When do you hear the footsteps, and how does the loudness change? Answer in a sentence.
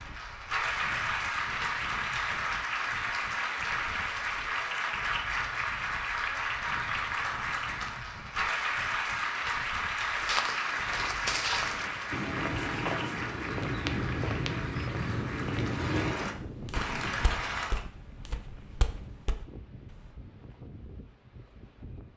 The footsteps can be heard from 10.1 to 20.1 s, getting quieter.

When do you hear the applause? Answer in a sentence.
The applause can be heard from 0.0 to 17.8 s.